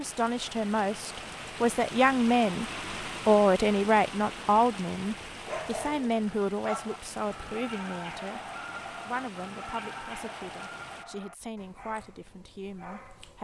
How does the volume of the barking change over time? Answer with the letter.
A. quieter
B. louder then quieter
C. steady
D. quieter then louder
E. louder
A.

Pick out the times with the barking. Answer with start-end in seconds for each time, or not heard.
5.3-13.4.